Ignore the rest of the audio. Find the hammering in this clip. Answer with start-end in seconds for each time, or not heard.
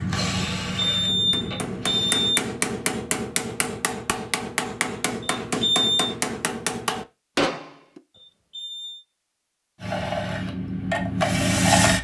1.1-8.0.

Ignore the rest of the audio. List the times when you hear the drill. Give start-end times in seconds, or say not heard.
0.0-2.3, 9.8-11.9.